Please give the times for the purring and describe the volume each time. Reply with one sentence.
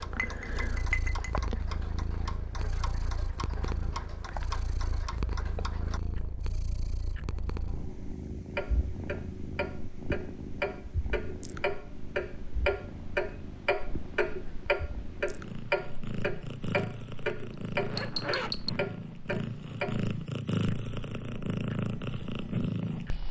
The purring can be heard from 0.0 to 23.2 s, getting louder.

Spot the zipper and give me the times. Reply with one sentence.
You can hear the zipper from 17.8 to 18.8 s.